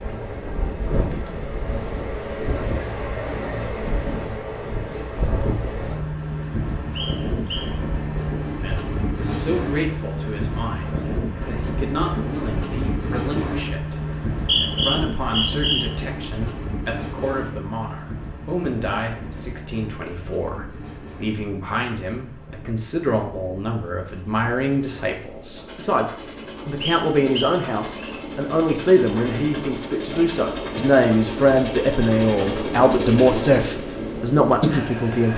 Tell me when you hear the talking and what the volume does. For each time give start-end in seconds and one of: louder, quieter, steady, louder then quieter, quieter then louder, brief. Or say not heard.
8.6-35.3 louder.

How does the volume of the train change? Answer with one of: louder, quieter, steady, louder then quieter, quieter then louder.
quieter then louder.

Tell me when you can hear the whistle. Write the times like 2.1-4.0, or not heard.
7.0-7.7, 14.3-15.8, 26.8-28.2.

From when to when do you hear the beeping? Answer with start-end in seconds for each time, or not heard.
not heard.